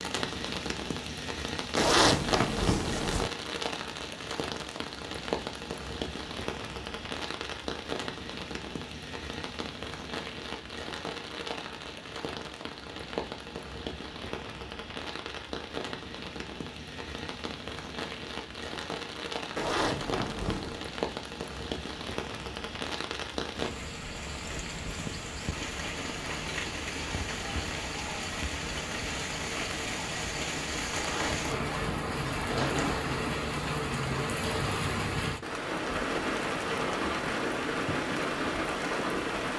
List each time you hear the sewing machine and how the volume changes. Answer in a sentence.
You can't hear the sewing machine here.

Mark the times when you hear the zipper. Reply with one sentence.
You can hear the zipper from 1.8 to 3.3 s, from 19.6 to 20.9 s and from 30.9 to 33.0 s.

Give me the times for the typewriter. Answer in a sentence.
The typewriter can't be heard in this clip.